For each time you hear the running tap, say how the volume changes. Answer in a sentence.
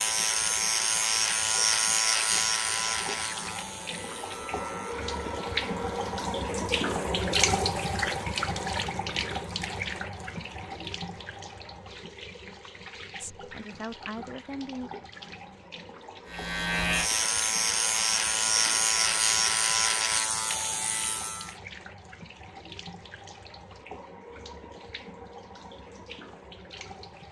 The running tap can be heard from 0.0 to 27.2 s, getting louder then quieter.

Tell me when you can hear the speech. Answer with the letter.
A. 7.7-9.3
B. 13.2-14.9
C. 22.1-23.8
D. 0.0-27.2
B.